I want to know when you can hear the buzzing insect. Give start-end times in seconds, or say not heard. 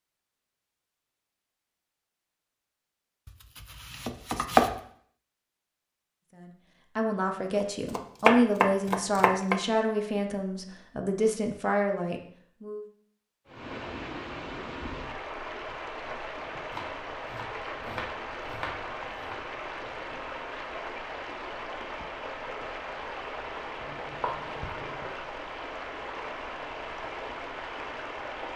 not heard.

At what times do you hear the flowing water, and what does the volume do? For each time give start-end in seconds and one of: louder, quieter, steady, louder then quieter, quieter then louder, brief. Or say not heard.
13.4-28.5 steady.